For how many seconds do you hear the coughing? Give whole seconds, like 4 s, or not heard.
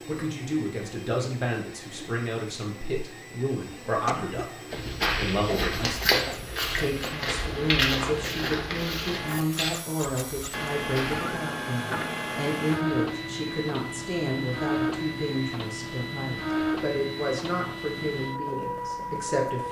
2 s.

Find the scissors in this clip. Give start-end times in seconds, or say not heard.
not heard.